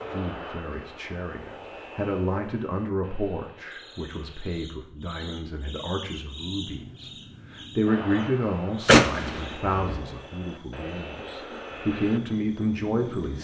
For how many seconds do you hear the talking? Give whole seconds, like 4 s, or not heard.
13 s.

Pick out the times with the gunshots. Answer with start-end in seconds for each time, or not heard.
8.8-10.0.